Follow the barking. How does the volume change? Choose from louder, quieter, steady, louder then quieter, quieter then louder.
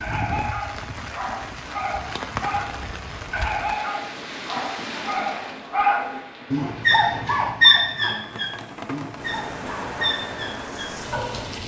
louder then quieter.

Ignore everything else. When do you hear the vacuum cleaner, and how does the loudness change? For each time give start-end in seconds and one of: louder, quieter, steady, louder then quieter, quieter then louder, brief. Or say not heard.
not heard.